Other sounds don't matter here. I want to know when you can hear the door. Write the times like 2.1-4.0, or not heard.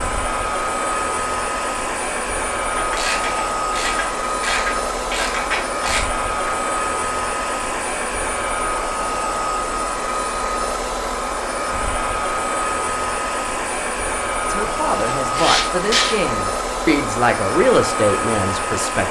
not heard.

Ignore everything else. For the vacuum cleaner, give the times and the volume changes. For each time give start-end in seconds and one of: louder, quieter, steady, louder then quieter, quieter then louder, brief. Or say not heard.
0.0-19.0 steady.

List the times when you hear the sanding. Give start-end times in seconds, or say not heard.
14.6-16.1.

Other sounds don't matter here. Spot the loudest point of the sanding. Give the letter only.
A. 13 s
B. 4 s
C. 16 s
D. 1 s
C.